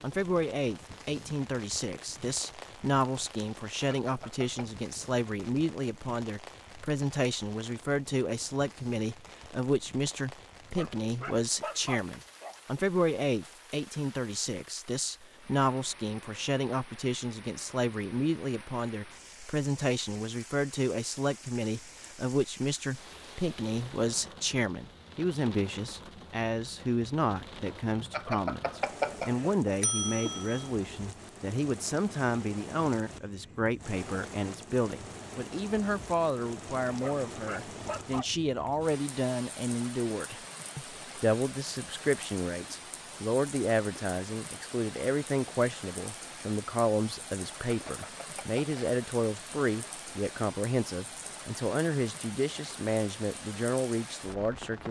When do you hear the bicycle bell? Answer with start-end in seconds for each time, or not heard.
3.9-4.7, 28.1-30.6, 47.6-48.8.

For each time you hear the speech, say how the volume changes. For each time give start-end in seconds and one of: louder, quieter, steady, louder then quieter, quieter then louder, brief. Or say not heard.
0.0-54.8 steady.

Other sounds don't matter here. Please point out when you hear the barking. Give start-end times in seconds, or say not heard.
10.7-12.6, 36.9-38.3.